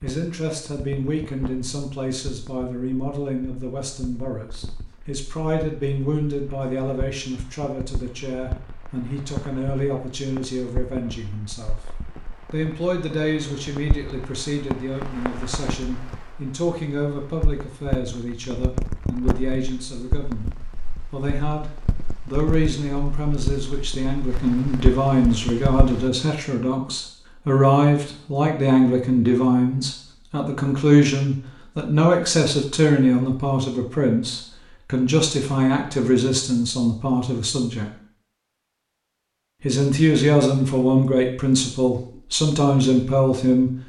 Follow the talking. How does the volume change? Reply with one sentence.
The volume of the talking goes up.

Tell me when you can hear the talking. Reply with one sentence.
You can hear the talking from 0.0 to 11.8 s, from 12.5 to 37.9 s and from 39.6 to 43.7 s.